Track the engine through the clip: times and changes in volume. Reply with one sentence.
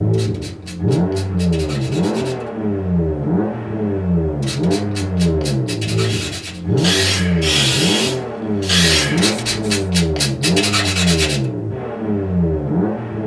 The engine can be heard from 0.0 to 13.2 s, at a steady volume.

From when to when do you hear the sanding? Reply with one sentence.
The sanding can be heard from 0.1 to 2.5 s, from 4.4 to 6.6 s and from 9.2 to 11.4 s.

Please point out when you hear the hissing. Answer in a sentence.
The hissing can be heard from 6.0 to 9.8 s.